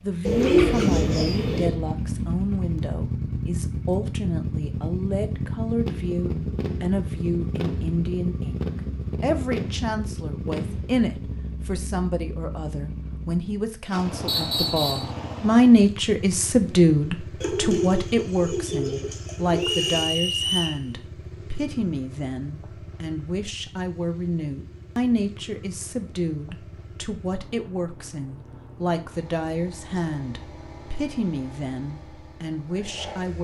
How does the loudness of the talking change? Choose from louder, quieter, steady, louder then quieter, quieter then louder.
louder then quieter.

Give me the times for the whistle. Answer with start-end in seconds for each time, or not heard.
14.2-15.1, 19.6-20.8.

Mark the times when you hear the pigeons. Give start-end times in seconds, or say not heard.
0.2-1.8, 17.4-20.1.